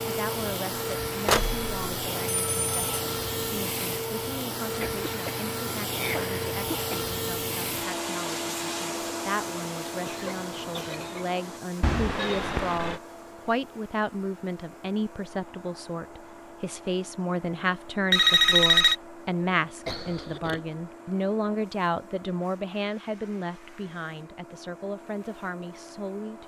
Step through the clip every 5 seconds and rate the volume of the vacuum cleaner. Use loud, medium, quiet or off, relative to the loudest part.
loud, loud, medium, quiet, quiet, quiet.